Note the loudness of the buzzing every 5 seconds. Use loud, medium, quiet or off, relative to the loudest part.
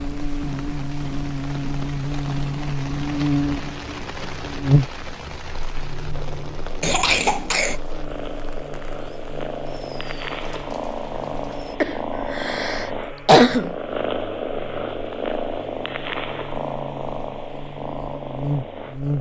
loud, quiet, quiet, medium.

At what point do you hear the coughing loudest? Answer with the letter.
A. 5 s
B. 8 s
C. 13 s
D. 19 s
C.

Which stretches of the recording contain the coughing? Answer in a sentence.
The coughing can be heard from 6.8 to 7.8 s and from 11.8 to 13.8 s.